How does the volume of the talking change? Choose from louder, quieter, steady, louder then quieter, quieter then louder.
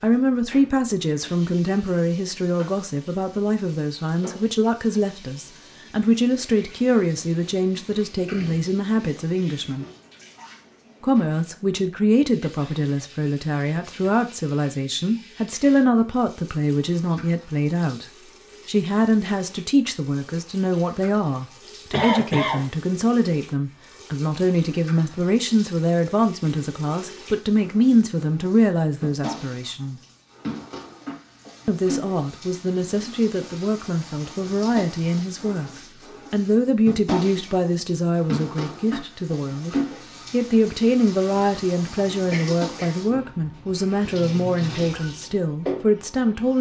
steady.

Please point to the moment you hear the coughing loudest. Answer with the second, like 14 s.
22 s.